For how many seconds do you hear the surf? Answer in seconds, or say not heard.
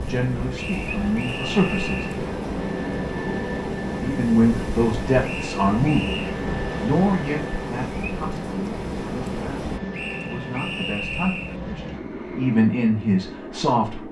10 s.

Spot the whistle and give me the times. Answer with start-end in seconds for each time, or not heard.
0.6-2.2, 5.2-6.3, 9.9-11.6.